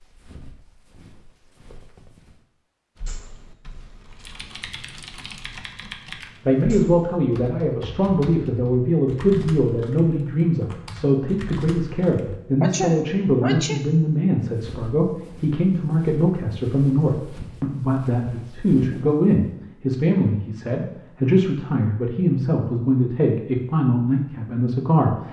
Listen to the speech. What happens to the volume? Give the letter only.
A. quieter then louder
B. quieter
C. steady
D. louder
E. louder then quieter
C.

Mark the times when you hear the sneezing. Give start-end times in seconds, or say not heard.
12.6-13.8.